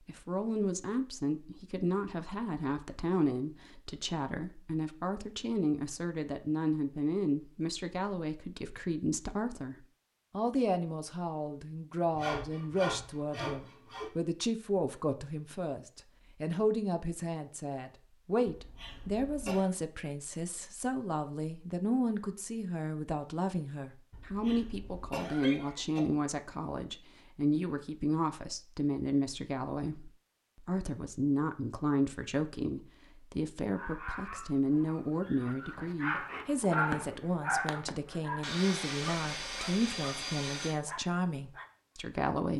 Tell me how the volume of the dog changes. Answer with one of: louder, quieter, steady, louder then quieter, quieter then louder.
louder then quieter.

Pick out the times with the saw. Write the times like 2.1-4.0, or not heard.
12.1-14.1, 38.4-40.8.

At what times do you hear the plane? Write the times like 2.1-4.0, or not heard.
not heard.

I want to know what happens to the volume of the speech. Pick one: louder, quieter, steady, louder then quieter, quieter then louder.
steady.